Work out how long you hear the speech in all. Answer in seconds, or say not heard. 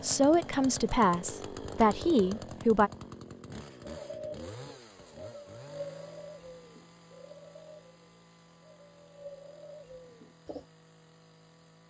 3 s.